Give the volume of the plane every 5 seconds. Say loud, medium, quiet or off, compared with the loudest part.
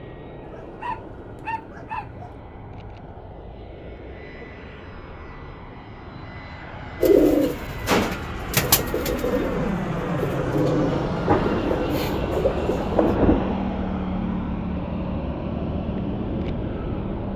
quiet, medium, loud, loud.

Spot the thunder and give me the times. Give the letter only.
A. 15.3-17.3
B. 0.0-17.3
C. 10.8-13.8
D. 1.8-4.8
C.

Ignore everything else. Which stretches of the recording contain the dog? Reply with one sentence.
The dog can be heard from 0.4 to 2.4 s.